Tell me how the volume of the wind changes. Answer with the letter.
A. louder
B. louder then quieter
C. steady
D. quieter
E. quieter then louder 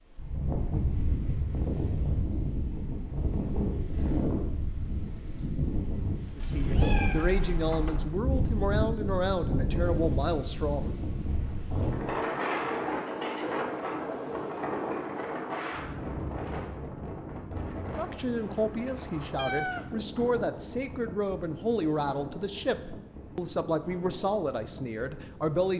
D.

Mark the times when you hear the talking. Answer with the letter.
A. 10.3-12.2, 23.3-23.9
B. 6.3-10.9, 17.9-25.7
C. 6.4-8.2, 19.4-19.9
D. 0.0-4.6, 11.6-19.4
B.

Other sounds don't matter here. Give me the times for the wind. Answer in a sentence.
The wind can be heard from 0.1 to 25.7 s.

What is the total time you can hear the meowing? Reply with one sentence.
You can hear the meowing for 2 seconds altogether.